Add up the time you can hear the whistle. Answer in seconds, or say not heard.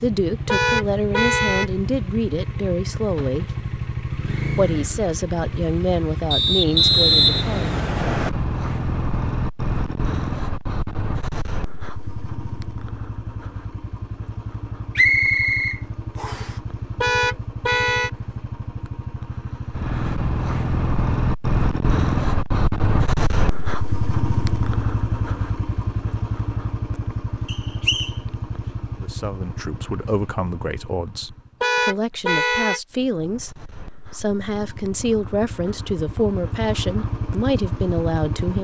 4 s.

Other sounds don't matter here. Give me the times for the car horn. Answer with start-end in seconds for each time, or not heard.
0.5-1.7, 17.0-18.1, 31.6-32.8.